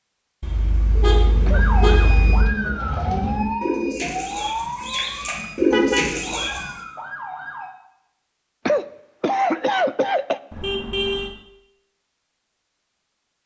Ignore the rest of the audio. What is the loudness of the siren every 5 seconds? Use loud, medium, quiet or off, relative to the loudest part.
loud, medium, off.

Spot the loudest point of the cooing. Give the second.
6 s.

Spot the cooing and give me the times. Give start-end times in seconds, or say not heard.
1.2-6.7.